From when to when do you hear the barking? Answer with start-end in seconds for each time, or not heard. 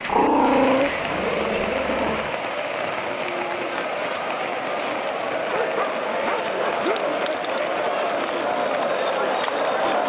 0.1-2.4, 5.3-7.2.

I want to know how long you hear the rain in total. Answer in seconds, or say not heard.
10 s.